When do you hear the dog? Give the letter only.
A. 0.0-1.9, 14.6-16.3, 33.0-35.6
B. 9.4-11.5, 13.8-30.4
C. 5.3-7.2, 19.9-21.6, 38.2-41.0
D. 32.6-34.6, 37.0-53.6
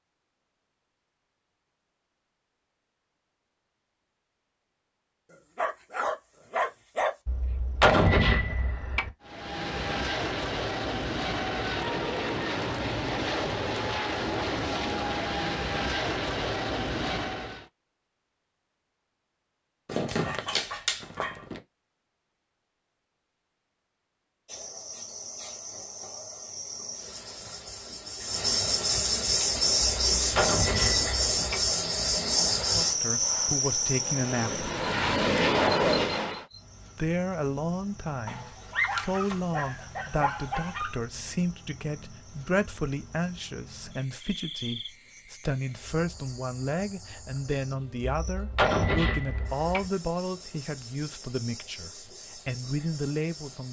C.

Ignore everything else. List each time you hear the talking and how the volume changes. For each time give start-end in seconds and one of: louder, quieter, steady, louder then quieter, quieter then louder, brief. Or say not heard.
32.6-34.6 brief
37.0-53.6 steady.